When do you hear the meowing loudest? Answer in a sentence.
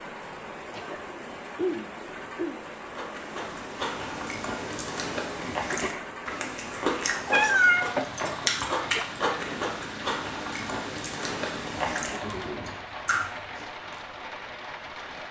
The loudest moment of the meowing is at 8 seconds.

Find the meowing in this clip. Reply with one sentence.
The meowing can be heard from 7.2 to 9.1 s.